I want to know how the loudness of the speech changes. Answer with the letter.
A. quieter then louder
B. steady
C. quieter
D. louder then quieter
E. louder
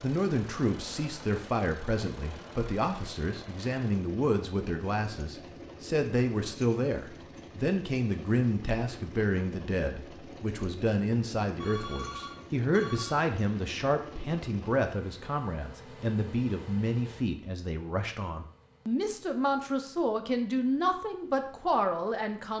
B.